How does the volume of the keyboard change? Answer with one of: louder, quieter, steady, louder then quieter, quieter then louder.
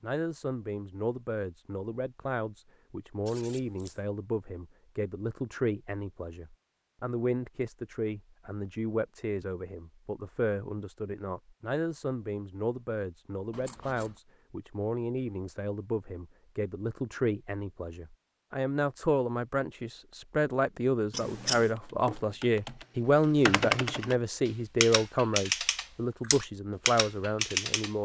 louder.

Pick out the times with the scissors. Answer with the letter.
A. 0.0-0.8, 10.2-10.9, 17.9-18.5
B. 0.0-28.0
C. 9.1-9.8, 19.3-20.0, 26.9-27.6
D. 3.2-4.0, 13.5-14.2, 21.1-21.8
D.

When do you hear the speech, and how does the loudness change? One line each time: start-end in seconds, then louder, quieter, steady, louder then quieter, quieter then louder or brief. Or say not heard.
0.0-28.0 louder.